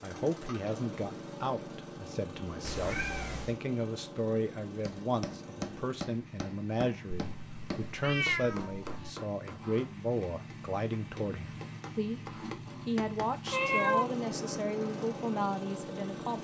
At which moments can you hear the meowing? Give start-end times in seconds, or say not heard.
2.6-3.5, 7.2-9.1, 13.5-14.2.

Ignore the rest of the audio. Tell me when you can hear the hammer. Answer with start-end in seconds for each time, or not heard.
4.8-13.6.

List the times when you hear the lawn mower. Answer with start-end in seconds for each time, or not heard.
0.0-16.3.